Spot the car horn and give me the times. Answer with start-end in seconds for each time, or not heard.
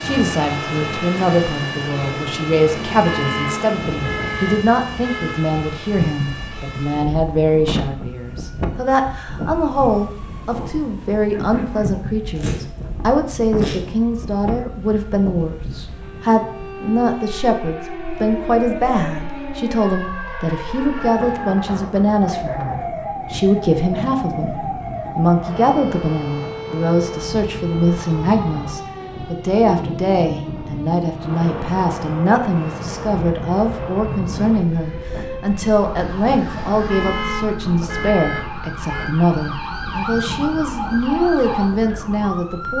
2.9-5.5, 36.7-39.1.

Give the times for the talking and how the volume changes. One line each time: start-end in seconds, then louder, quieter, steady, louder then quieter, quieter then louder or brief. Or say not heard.
0.0-42.7 steady.